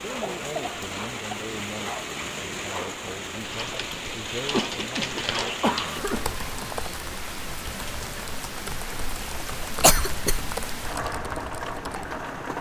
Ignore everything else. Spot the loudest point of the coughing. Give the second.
10 s.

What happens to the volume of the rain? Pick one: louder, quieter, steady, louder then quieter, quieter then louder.
steady.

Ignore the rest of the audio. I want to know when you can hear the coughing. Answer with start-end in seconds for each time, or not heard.
0.2-1.5, 4.5-6.4, 9.8-10.6.